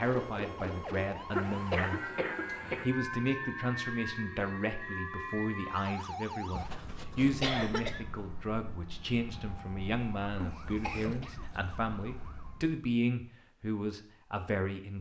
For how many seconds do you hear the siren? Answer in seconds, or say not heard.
13 s.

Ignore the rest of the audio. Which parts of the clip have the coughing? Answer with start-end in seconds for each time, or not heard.
1.3-2.9, 5.8-8.1, 10.4-11.4.